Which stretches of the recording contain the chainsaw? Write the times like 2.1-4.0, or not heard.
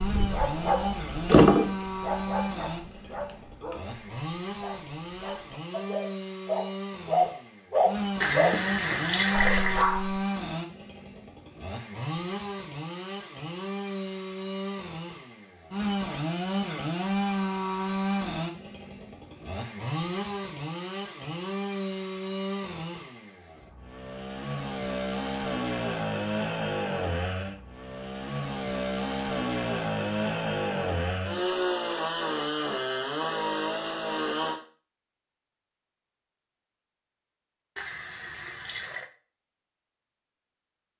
0.0-34.6.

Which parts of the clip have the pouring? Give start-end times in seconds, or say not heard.
8.2-9.8, 37.8-39.1.